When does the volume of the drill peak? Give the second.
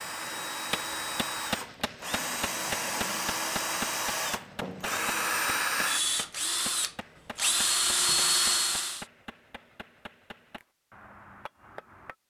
8 s.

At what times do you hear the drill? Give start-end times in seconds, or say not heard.
0.0-9.1.